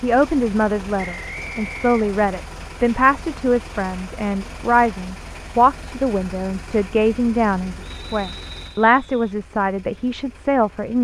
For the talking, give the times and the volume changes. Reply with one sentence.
You can hear the talking from 0.0 to 11.0 s, at a steady volume.